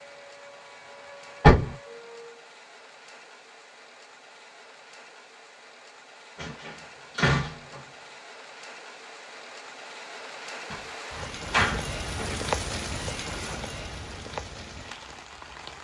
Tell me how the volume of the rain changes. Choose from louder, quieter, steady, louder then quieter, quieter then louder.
louder.